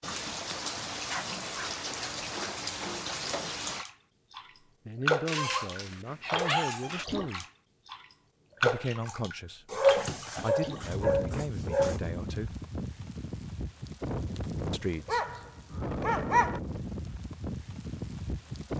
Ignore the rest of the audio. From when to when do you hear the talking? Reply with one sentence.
You can hear the talking from 4.8 to 7.5 s, from 8.6 to 12.6 s and from 14.7 to 15.5 s.